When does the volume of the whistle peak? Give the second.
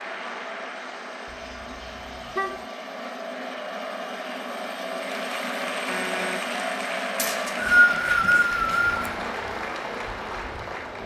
8 s.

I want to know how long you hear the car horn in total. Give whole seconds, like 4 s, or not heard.
2 s.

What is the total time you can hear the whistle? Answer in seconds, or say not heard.
2 s.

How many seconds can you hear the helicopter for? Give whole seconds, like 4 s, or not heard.
11 s.